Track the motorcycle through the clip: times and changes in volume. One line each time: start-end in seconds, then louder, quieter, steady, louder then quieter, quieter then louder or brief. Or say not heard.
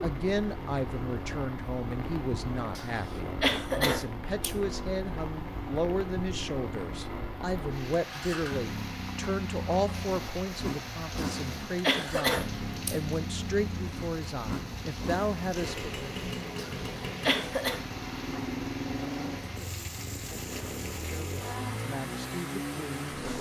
0.0-23.3 steady.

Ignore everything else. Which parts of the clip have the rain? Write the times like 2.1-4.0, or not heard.
0.0-23.3.